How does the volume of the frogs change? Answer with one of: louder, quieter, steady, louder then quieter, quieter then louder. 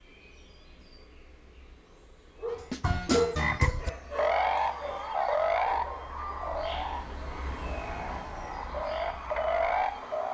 quieter then louder.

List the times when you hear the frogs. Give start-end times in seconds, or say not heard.
2.5-10.2.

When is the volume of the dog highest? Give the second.
3 s.